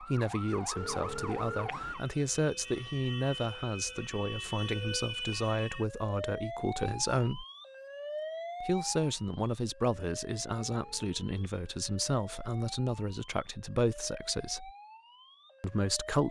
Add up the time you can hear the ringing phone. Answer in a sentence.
The ringing phone can be heard for 2 seconds in total.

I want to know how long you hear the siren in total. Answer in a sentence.
The siren can be heard for 16 seconds in total.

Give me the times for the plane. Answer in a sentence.
The plane can't be heard in this clip.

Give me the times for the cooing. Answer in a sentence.
The cooing can't be heard in this clip.